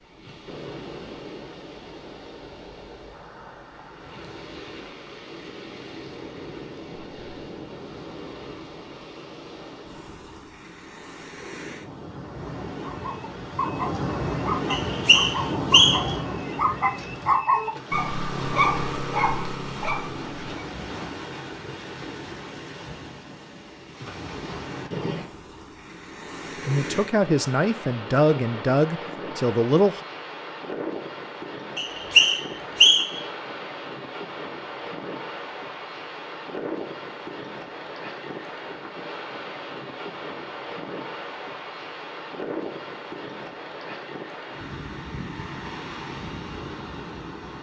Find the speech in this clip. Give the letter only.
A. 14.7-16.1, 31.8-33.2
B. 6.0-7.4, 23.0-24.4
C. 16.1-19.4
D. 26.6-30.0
D.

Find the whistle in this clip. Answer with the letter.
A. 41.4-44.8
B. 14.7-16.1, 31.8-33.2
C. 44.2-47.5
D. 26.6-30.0
B.